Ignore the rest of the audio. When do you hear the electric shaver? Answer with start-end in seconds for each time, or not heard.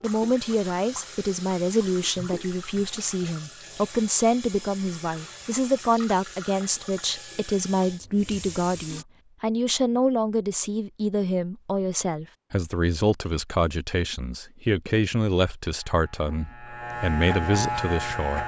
15.7-18.4.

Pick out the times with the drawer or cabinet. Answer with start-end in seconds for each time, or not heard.
not heard.